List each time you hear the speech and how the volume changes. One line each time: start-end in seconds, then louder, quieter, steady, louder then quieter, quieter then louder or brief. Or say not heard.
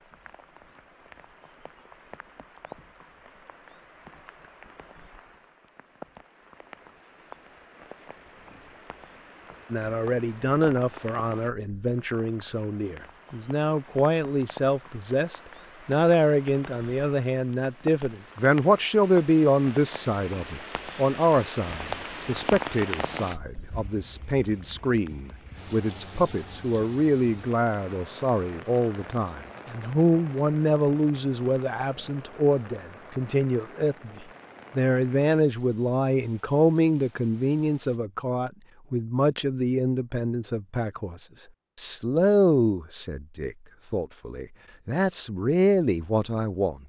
9.7-46.8 steady.